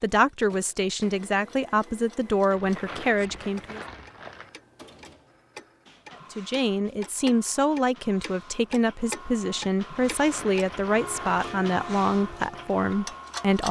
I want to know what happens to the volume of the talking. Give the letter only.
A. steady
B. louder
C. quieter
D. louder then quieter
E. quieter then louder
A.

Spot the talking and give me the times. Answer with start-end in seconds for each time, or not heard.
0.0-3.8, 6.3-13.6.